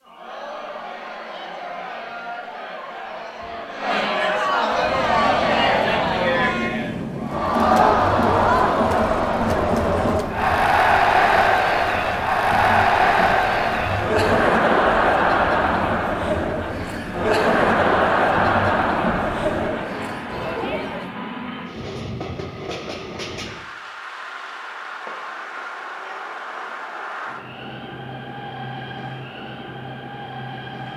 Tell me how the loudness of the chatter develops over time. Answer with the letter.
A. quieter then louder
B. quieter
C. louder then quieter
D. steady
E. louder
E.